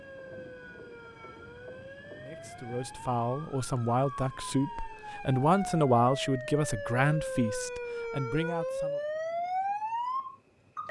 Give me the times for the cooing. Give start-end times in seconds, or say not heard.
not heard.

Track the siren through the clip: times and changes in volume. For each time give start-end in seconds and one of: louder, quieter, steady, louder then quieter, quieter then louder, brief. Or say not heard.
0.0-10.8 louder.